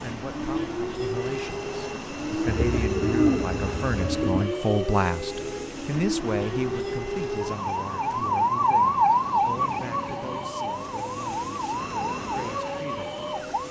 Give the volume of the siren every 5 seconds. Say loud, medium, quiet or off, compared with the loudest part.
medium, loud, medium.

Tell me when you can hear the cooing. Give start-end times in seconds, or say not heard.
2.5-4.5.